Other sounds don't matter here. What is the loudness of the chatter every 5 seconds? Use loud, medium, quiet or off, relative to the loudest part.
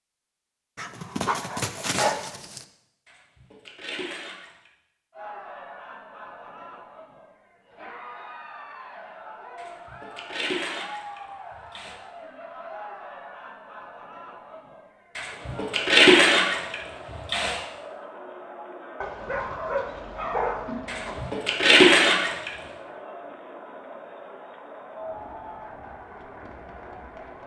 off, loud, loud, loud, loud, loud.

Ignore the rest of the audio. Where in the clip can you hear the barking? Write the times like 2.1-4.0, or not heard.
0.8-2.6, 19.0-21.4.